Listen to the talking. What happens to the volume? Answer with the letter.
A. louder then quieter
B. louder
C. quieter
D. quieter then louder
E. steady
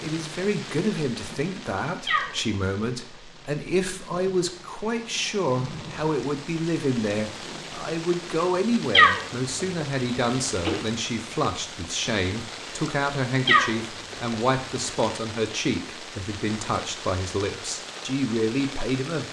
E.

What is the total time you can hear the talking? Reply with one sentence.
You can hear the talking for 19 seconds altogether.